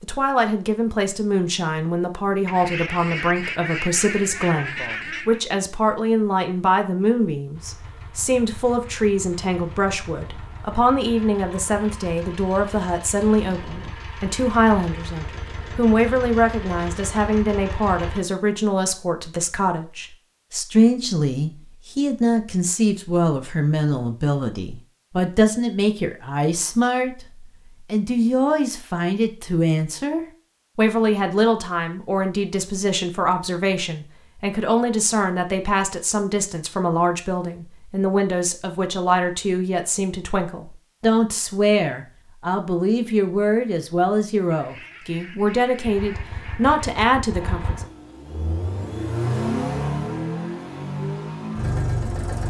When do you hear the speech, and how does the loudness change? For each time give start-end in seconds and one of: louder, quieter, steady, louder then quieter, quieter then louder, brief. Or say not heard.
0.0-27.2 steady
27.9-47.9 steady.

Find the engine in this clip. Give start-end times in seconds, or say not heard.
7.5-18.2, 45.8-52.4.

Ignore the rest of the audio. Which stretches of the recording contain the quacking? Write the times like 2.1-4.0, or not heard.
2.5-5.4, 44.5-46.9.